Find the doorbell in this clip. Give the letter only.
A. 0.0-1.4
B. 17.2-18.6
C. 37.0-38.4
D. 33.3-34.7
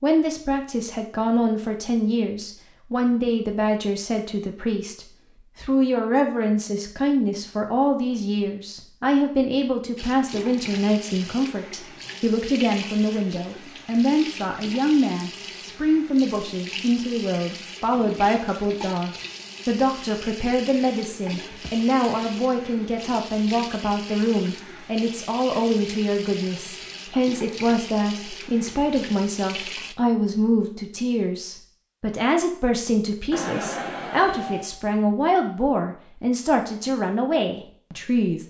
D.